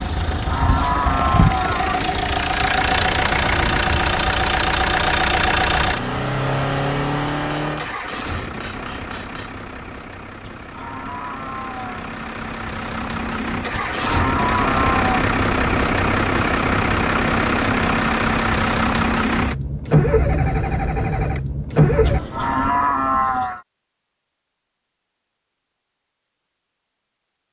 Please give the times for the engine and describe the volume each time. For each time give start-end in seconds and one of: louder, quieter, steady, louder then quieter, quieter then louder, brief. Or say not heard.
0.0-22.2 quieter then louder.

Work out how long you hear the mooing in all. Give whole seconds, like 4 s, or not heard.
7 s.